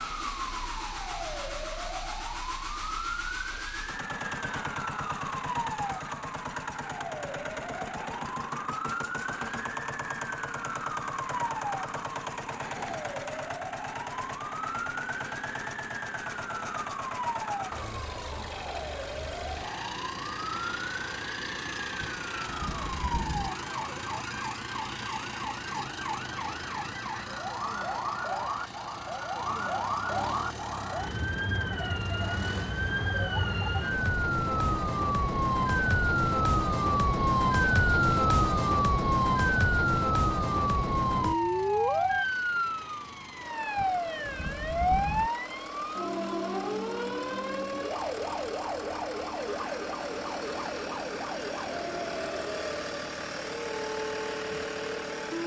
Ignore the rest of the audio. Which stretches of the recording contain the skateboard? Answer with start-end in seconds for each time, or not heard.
not heard.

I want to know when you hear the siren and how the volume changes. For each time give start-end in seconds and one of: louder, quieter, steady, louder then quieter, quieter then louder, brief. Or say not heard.
0.0-55.4 louder then quieter.